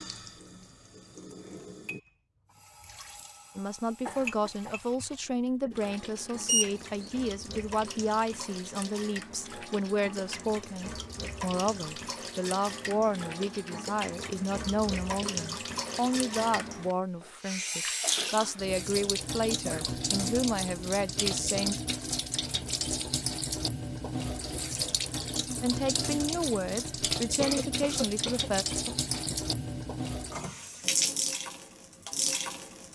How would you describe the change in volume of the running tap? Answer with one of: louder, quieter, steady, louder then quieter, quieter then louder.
louder.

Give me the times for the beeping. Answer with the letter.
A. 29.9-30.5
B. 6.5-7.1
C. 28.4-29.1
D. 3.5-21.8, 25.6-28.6
B.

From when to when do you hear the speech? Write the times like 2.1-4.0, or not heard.
3.5-21.8, 25.6-28.6.